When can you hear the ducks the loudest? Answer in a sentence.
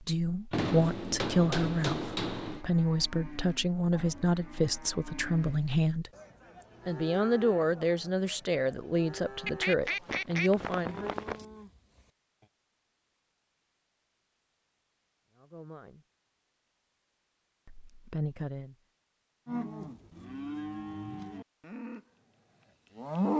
The loudest moment of the ducks is at 10 seconds.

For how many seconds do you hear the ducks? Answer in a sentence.
The ducks can be heard for 2 seconds in total.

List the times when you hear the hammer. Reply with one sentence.
The hammer can be heard from 0.5 to 2.6 s.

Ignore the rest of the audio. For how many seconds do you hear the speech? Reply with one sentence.
You can hear the speech for 12 seconds altogether.